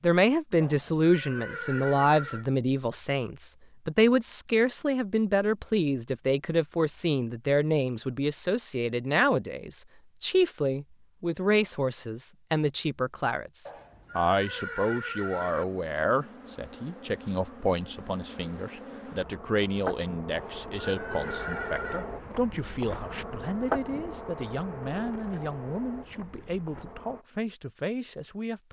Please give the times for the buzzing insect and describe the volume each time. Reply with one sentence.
You can hear the buzzing insect from 15.5 to 27.2 s, getting louder then quieter.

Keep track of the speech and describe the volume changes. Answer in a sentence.
The loudness of the speech goes down.